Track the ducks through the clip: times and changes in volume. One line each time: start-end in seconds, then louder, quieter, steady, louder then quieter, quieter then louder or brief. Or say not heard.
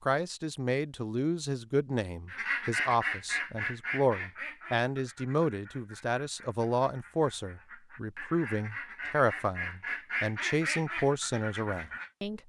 2.2-12.1 quieter then louder.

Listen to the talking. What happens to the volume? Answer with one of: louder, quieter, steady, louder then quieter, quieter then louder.
steady.